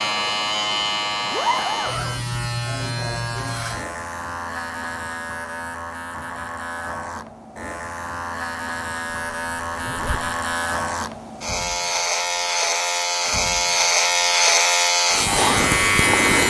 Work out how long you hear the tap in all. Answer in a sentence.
You can't hear the tap here.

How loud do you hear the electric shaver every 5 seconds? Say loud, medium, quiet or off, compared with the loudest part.
medium, quiet, loud, loud.